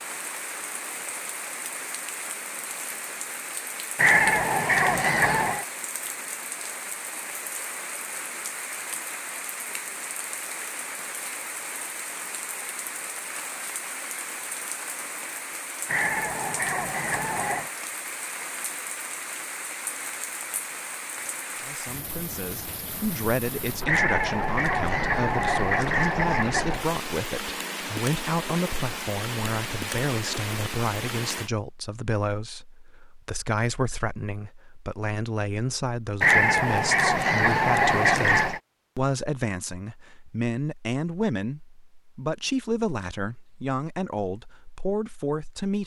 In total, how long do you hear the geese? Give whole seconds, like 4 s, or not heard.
9 s.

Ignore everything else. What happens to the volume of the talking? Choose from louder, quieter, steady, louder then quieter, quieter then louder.
steady.